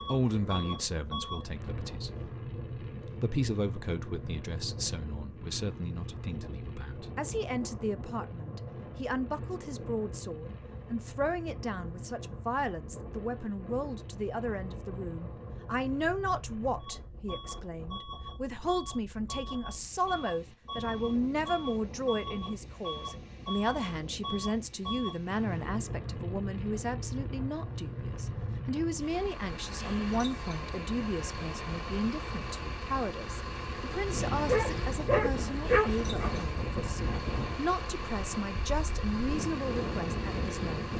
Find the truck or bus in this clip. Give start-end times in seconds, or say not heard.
0.0-40.9.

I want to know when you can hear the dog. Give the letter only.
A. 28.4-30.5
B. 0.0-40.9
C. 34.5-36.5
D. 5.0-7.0
C.